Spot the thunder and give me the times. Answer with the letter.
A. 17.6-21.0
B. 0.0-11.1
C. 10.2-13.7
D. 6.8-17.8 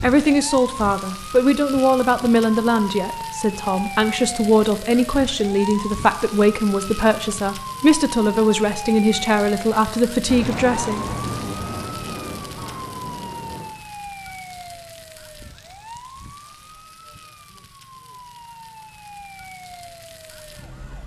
C.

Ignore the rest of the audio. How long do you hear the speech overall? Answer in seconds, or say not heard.
11 s.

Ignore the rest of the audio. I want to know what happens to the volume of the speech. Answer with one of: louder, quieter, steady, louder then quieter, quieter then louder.
steady.